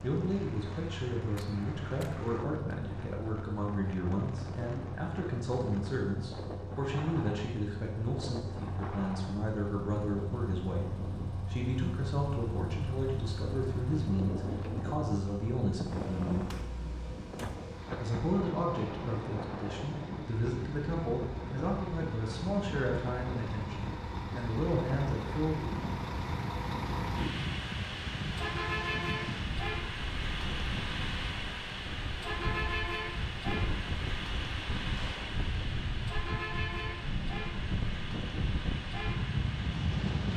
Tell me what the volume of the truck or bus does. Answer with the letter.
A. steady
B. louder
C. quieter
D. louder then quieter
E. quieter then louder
B.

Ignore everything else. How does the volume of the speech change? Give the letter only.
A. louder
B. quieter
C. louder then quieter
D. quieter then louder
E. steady
E.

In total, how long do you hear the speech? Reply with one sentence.
You can hear the speech for 24 seconds altogether.